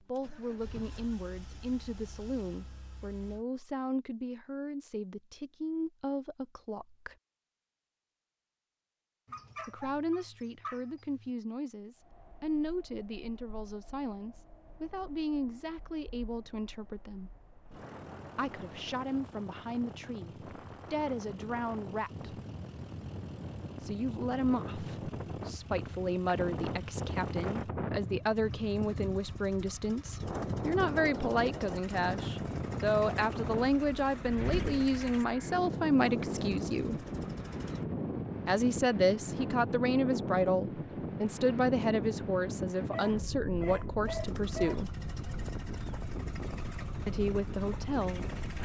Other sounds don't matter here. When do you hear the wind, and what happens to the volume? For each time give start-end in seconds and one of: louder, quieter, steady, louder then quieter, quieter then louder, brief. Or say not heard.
11.9-48.6 louder.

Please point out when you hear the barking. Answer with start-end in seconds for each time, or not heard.
9.2-11.3, 42.9-44.9.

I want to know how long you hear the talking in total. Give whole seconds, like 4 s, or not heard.
40 s.